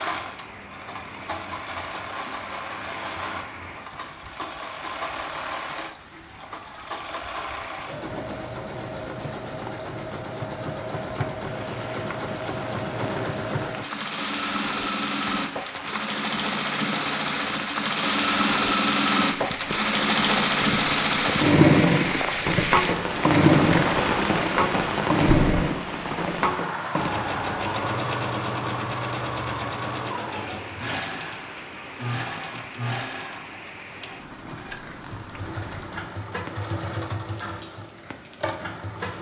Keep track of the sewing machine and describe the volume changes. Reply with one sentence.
The volume of the sewing machine goes up, then down.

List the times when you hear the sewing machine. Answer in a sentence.
You can hear the sewing machine from 0.0 to 39.1 s.